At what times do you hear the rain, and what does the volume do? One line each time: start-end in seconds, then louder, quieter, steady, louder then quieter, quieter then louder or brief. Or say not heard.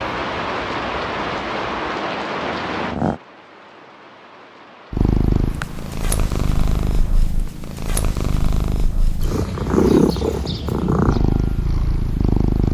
0.0-7.2 quieter.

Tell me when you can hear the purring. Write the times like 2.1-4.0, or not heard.
0.0-3.2, 4.9-12.7.